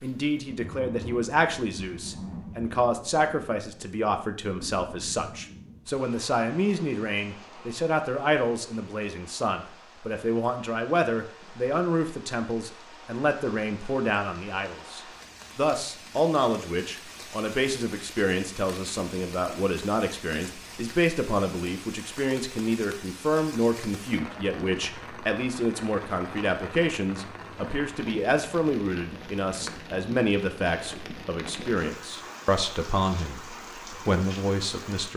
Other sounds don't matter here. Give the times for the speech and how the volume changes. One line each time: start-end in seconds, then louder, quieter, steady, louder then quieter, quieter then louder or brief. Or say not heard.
0.0-35.1 steady.